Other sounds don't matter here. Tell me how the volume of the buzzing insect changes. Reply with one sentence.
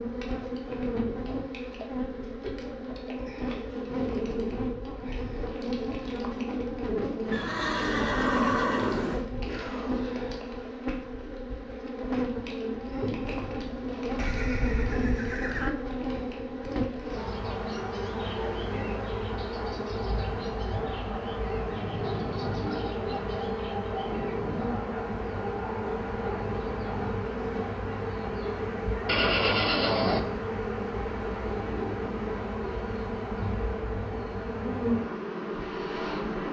The loudness of the buzzing insect stays about the same.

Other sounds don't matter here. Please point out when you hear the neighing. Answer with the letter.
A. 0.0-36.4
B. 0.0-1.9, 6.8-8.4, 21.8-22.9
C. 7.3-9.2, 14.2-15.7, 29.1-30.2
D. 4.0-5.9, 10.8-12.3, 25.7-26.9
C.